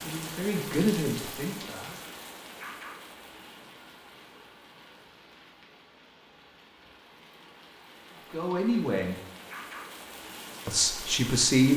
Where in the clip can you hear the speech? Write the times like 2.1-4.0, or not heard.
0.0-1.9, 8.3-9.2, 10.7-11.7.